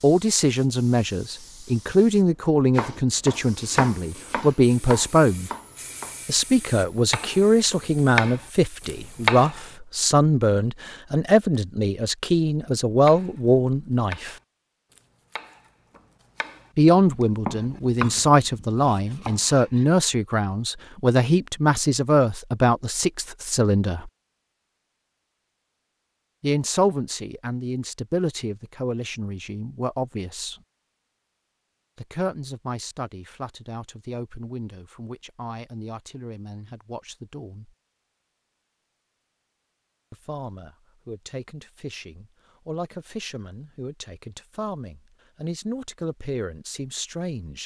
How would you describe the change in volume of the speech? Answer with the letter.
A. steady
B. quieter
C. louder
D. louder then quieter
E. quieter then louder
B.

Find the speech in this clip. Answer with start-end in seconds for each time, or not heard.
0.0-5.5, 6.2-14.3, 16.8-24.1, 26.4-30.6, 31.9-37.8, 40.1-47.6.